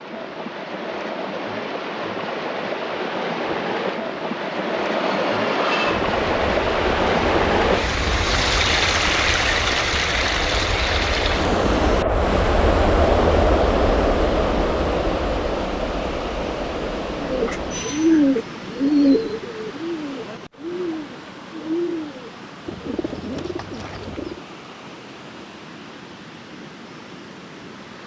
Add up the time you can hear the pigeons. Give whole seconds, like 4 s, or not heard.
7 s.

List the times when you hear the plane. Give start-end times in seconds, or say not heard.
4.9-18.2.